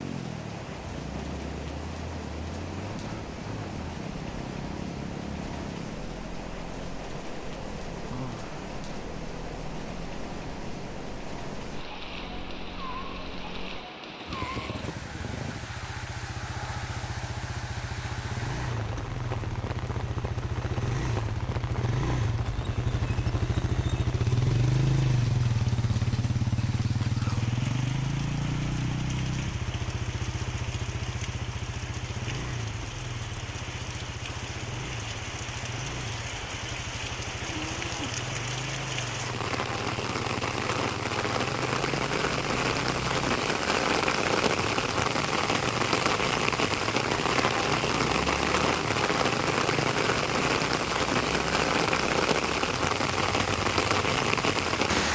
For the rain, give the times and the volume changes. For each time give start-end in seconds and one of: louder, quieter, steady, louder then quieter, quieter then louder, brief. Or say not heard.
0.0-55.1 louder.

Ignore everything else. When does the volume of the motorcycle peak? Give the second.
25 s.